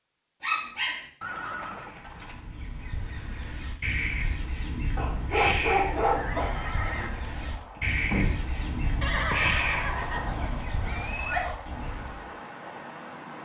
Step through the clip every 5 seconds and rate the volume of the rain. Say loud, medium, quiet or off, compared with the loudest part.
off, loud, loud.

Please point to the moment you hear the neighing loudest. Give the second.
9 s.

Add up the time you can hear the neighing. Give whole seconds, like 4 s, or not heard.
5 s.